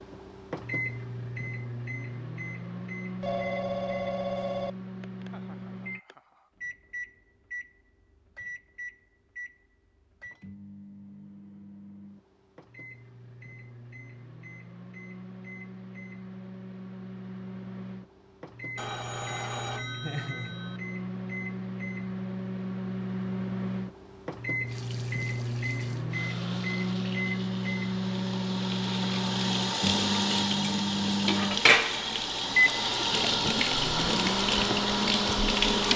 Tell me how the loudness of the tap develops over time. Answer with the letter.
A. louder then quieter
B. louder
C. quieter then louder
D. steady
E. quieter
B.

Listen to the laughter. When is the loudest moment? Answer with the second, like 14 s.
20 s.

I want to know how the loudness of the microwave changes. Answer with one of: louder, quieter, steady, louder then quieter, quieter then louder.
quieter then louder.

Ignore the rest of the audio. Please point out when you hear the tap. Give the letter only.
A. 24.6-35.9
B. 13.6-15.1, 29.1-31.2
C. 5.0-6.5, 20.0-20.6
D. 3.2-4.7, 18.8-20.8
A.